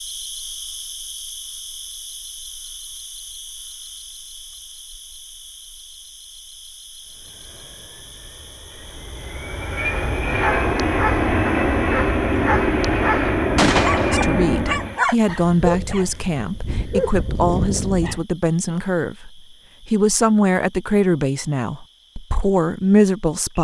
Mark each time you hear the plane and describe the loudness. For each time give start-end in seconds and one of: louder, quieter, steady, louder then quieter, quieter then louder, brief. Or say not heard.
7.0-15.0 louder.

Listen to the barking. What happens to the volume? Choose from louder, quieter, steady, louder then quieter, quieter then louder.
steady.